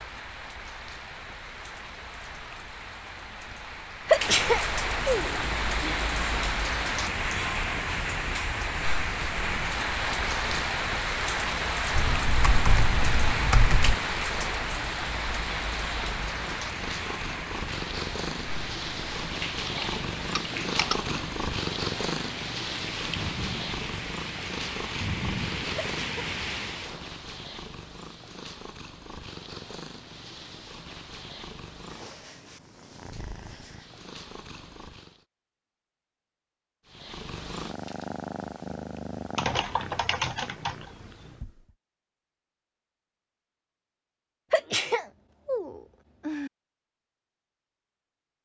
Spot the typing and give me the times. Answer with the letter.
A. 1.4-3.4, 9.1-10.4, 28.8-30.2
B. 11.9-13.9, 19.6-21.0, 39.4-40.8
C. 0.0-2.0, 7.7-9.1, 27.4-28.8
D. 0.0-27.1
B.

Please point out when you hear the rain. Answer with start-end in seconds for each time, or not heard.
0.0-27.1.